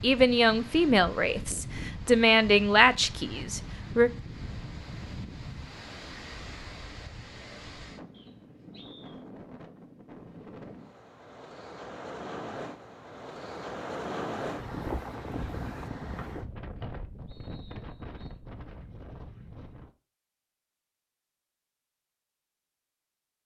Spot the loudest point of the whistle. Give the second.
17 s.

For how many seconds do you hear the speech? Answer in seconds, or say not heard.
4 s.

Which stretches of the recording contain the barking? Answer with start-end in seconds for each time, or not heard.
not heard.